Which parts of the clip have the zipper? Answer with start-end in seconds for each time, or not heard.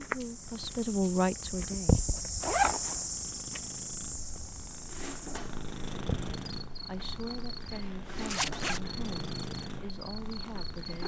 2.4-3.0, 8.2-8.8.